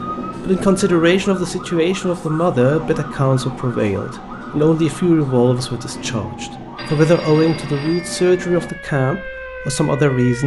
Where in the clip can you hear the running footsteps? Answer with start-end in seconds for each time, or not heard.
not heard.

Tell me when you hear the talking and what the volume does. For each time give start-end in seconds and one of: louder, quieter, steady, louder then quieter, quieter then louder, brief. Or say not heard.
0.0-10.4 steady.